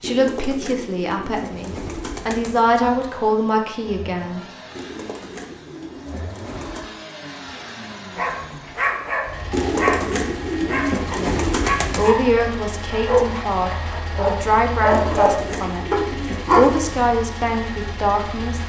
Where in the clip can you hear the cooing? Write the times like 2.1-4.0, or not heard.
0.0-2.7, 4.8-7.0, 9.5-12.2, 14.9-16.9.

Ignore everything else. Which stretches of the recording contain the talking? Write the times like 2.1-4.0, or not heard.
0.0-4.5, 11.1-15.8, 16.5-18.6.